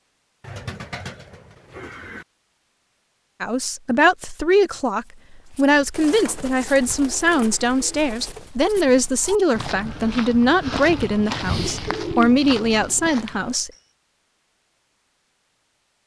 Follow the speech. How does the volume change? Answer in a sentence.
The loudness of the speech stays about the same.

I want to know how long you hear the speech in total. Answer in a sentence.
You can hear the speech for 10 seconds altogether.